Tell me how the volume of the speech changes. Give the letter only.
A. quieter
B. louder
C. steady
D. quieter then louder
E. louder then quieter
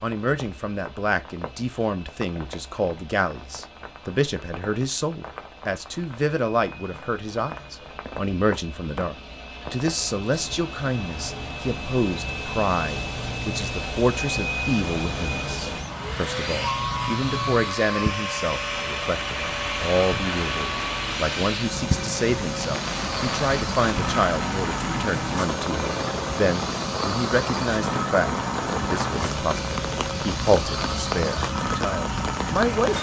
C.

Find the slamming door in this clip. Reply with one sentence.
You can't hear the slamming door here.